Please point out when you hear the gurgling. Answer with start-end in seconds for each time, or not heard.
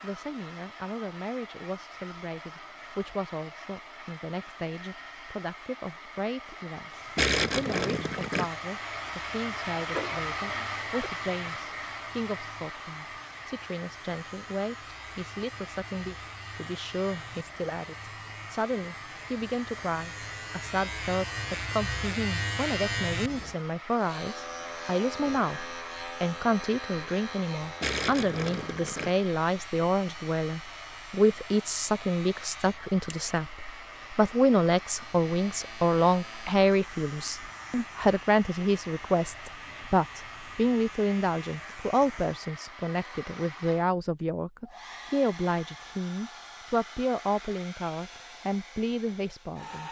7.2-8.5, 27.8-29.1.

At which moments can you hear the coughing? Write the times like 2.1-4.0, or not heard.
9.9-11.1.